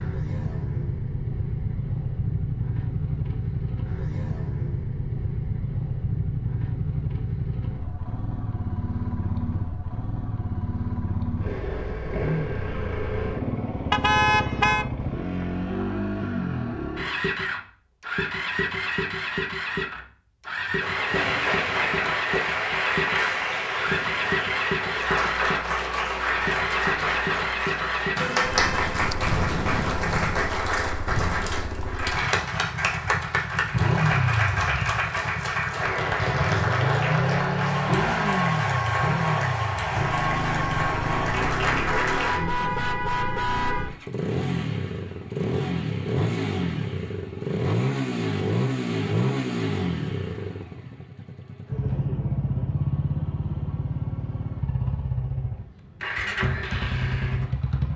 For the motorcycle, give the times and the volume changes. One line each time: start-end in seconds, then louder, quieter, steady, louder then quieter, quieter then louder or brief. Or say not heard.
0.0-57.9 steady.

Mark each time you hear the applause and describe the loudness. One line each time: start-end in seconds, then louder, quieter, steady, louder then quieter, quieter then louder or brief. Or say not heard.
20.8-42.4 steady.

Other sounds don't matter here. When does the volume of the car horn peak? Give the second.
14 s.